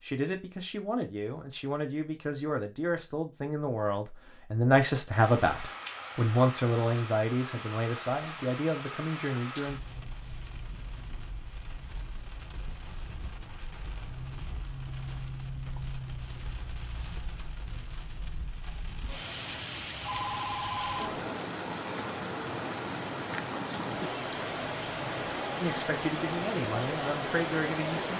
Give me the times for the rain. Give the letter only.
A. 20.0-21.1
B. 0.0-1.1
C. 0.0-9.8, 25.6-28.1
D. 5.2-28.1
D.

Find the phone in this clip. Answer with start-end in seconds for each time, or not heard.
20.0-21.1.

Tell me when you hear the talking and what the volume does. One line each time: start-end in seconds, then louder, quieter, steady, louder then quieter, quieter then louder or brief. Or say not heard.
0.0-9.8 louder then quieter
25.6-28.1 brief.